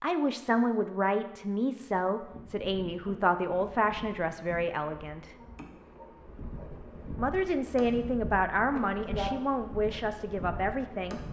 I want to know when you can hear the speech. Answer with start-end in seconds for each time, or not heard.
0.0-5.3, 7.2-11.2.